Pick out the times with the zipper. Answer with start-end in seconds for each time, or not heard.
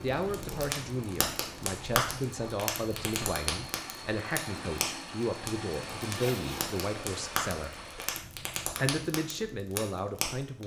6.1-6.8.